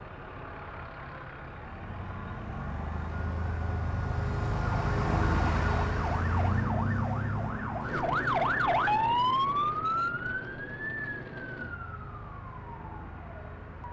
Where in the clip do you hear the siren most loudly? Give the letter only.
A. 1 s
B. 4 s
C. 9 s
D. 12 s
C.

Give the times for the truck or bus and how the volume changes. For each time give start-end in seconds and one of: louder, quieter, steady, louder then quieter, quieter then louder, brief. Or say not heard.
0.0-13.8 louder then quieter.